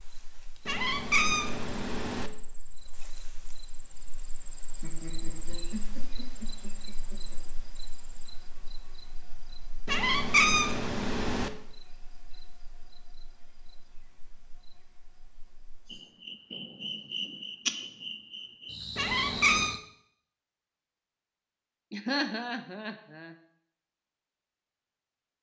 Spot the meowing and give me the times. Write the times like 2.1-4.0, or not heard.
0.7-2.3, 9.8-11.5, 18.9-19.8.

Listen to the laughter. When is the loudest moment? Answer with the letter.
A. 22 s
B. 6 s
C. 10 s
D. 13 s
A.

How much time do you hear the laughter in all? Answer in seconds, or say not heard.
4 s.